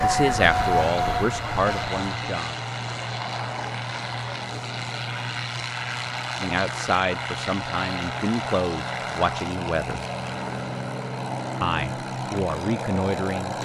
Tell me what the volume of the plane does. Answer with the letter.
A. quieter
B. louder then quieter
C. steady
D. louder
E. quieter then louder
C.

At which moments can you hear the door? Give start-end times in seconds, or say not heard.
not heard.